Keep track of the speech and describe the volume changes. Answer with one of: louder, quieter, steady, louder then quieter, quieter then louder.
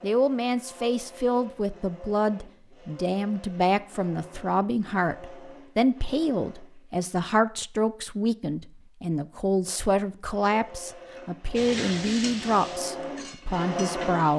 steady.